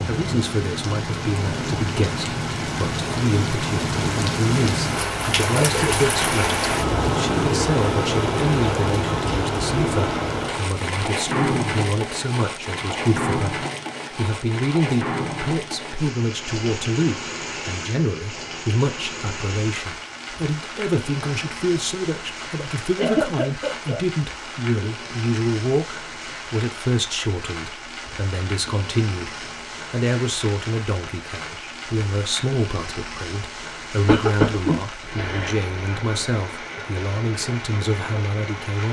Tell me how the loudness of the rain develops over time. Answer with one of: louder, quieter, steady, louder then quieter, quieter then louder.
quieter.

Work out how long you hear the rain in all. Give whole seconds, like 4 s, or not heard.
39 s.